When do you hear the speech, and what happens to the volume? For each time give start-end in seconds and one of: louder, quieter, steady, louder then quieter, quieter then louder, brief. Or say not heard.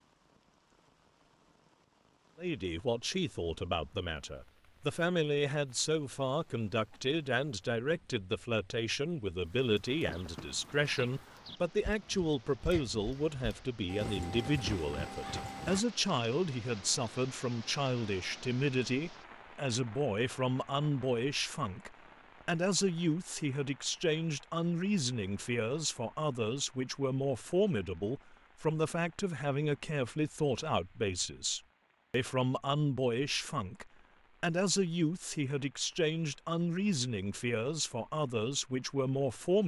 2.4-39.6 steady.